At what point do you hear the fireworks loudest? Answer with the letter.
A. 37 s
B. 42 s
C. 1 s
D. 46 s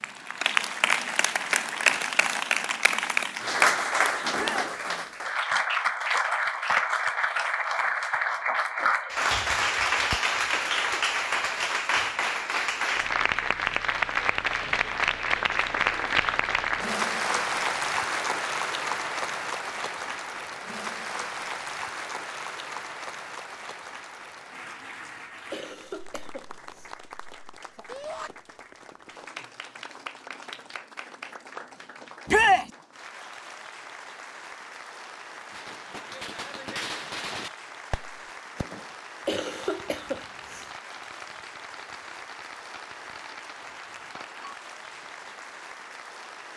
A.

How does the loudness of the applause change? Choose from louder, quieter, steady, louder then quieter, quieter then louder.
quieter.